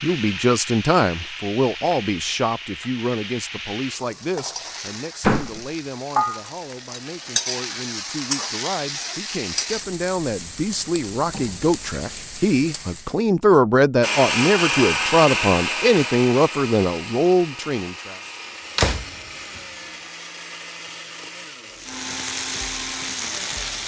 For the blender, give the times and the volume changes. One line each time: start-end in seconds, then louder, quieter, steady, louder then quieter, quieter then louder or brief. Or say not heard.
14.0-23.8 quieter.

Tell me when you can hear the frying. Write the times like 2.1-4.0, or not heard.
0.0-13.2, 21.7-23.8.